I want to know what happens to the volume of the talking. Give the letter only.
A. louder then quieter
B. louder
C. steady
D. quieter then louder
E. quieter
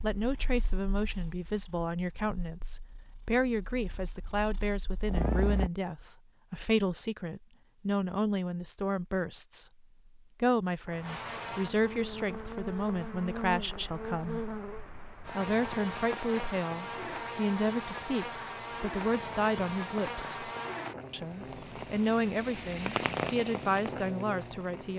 C.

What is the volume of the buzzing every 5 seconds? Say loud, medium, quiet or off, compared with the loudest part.
off, off, loud, loud, loud.